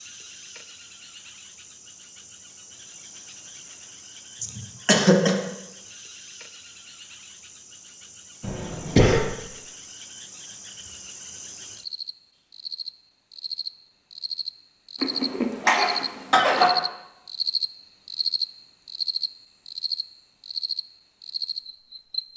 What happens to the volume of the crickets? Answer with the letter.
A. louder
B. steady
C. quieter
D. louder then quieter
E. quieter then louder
A.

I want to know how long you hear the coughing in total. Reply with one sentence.
You can hear the coughing for 4 seconds altogether.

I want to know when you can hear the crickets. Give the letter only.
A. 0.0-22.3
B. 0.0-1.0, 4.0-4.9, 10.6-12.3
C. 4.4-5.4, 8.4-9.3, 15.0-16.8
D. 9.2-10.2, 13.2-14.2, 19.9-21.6
A.